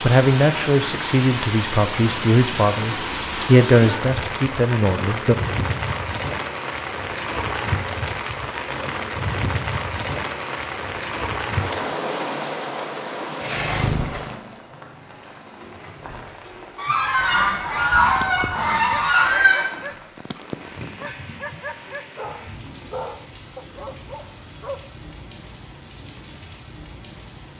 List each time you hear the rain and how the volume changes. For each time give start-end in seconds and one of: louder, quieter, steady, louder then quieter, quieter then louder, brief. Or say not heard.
0.0-27.5 quieter.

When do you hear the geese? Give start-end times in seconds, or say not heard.
16.8-19.6.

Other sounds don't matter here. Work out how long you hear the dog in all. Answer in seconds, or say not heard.
7 s.